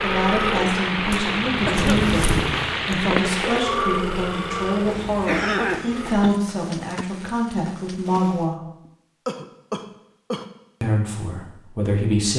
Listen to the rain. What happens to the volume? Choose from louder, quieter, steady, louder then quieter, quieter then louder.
quieter.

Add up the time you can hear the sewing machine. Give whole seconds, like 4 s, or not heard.
6 s.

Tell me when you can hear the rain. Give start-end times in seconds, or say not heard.
0.0-8.6.